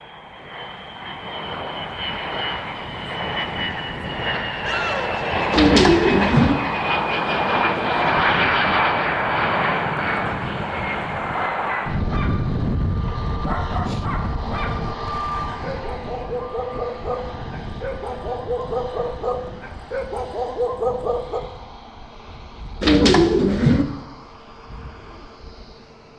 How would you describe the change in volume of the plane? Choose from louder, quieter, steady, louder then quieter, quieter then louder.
louder then quieter.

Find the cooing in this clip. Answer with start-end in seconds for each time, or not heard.
5.5-6.5, 22.8-23.9.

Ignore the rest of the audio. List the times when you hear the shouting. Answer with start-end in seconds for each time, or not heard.
4.6-5.5.